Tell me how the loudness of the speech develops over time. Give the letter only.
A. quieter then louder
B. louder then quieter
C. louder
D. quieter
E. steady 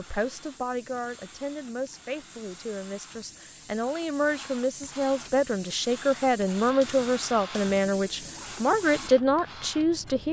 C.